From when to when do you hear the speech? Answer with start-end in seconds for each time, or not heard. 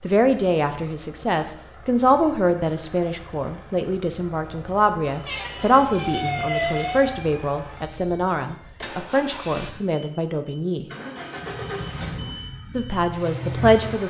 0.0-10.8, 12.7-14.0.